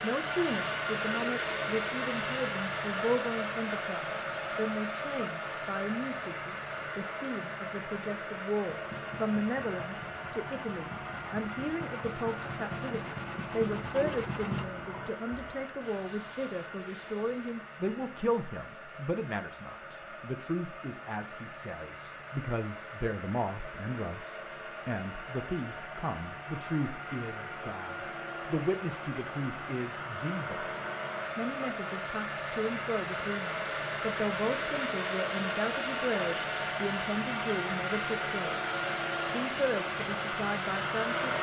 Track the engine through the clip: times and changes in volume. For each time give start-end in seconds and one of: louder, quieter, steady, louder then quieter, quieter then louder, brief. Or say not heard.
0.0-41.3 quieter then louder.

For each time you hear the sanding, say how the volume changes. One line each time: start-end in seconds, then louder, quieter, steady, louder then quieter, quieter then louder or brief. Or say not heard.
8.6-17.7 louder then quieter.